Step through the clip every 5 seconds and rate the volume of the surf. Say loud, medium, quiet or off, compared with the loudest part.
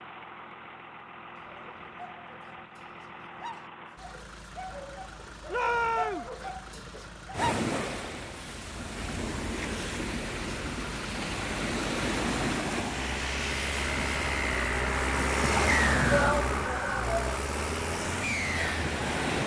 off, loud, loud, loud.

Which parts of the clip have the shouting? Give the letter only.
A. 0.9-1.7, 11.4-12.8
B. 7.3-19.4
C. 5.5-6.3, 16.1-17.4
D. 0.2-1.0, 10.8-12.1
C.